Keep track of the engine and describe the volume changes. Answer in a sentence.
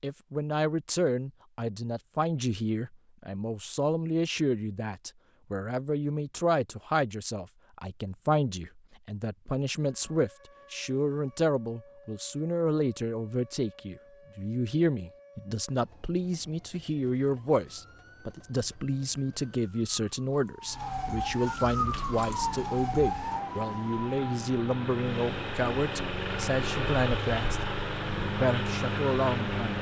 The volume of the engine goes up.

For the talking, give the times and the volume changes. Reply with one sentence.
You can hear the talking from 0.0 to 29.7 s, at a steady volume.